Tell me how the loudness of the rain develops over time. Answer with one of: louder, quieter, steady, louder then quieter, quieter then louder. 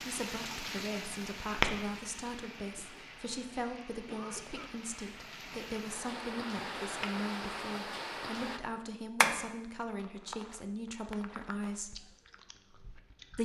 quieter then louder.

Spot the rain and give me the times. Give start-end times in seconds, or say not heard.
0.0-8.6.